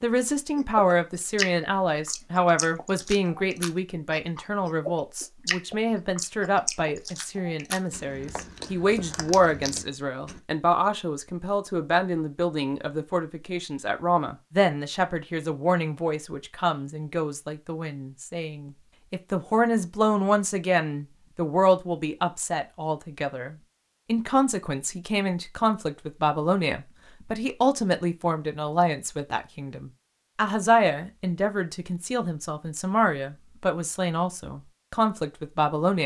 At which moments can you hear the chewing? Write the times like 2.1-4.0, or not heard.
0.6-10.4.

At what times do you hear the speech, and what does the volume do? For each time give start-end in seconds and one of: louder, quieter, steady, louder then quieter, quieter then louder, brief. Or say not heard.
0.0-36.0 steady.